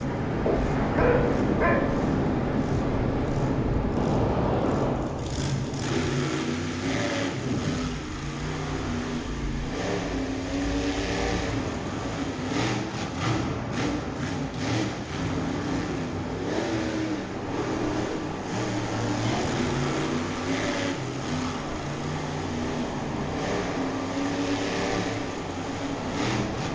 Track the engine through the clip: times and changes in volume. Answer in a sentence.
The engine can be heard from 0.0 to 26.7 s, getting louder.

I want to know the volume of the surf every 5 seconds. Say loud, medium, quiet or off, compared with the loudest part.
loud, medium, medium, medium, medium, medium.